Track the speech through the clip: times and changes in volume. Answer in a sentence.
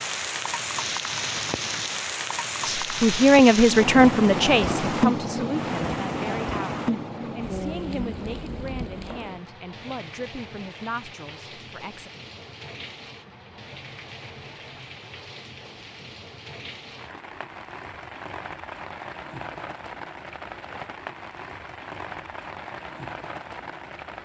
The speech can be heard from 2.8 to 12.1 s, getting quieter.